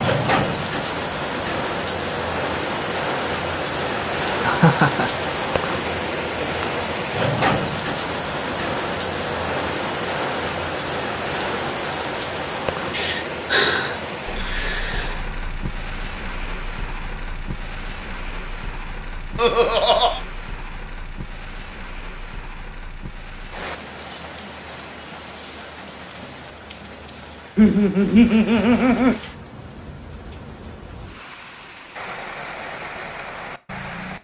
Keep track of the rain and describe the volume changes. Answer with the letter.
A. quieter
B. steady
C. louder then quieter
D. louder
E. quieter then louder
A.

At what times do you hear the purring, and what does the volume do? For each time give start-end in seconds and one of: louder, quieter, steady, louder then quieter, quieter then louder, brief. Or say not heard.
not heard.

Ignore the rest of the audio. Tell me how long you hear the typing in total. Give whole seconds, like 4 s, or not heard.
not heard.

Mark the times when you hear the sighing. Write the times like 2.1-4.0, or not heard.
12.9-15.2.